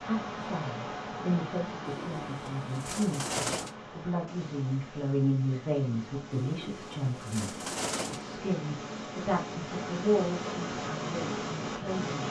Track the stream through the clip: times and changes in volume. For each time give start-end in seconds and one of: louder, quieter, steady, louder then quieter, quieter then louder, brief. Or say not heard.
0.0-12.2 quieter then louder.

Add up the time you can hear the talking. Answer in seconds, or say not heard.
12 s.